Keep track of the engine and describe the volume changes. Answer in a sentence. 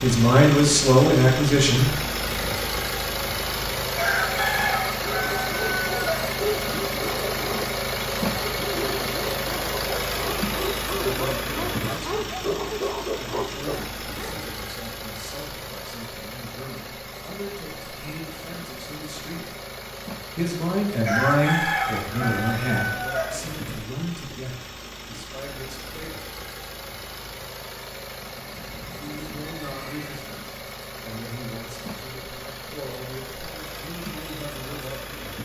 The volume of the engine goes down.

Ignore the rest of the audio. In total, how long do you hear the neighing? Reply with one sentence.
You can hear the neighing for 2 seconds altogether.